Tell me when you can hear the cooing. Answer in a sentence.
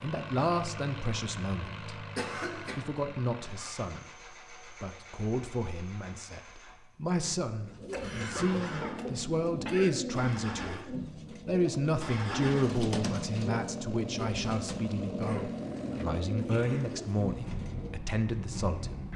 You can hear the cooing from 7.5 to 18.0 s.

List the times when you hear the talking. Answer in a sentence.
You can hear the talking from 0.0 to 2.0 s, from 2.8 to 4.0 s and from 4.8 to 19.1 s.